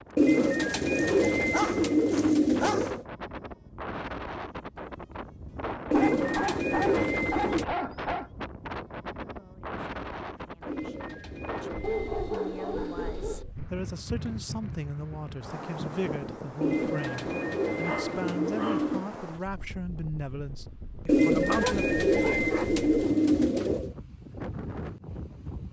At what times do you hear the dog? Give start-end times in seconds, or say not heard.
0.3-3.0, 5.8-8.3, 11.8-13.4, 17.9-18.9, 21.4-22.8.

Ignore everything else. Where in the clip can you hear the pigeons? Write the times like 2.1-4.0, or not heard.
0.1-3.0, 5.9-7.7, 10.7-13.5, 16.6-19.1, 21.1-23.9.